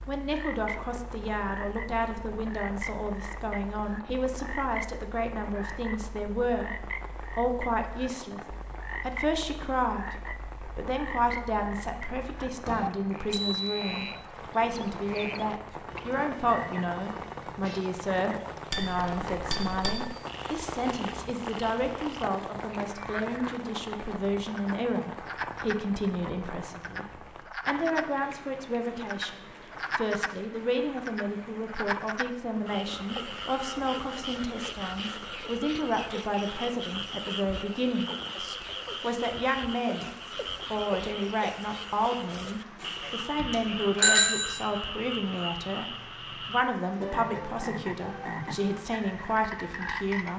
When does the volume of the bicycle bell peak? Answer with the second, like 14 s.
44 s.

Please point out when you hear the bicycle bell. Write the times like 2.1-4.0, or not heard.
13.3-13.9, 18.7-20.1, 42.8-44.5.